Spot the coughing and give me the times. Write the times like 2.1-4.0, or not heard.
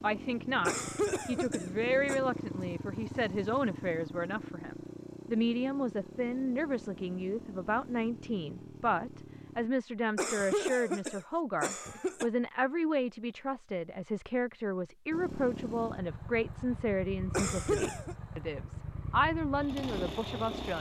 0.7-2.2, 10.2-12.3, 17.3-18.1.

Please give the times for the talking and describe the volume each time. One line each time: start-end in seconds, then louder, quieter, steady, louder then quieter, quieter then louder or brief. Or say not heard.
0.0-20.7 steady.